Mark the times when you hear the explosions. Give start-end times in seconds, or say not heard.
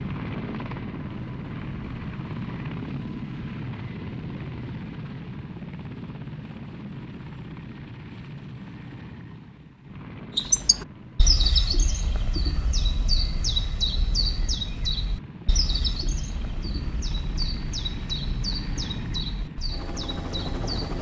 not heard.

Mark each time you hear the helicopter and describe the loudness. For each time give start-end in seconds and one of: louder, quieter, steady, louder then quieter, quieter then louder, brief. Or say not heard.
0.0-20.9 quieter then louder.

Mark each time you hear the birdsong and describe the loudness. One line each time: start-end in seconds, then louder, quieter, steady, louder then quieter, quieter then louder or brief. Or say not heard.
10.3-20.9 quieter.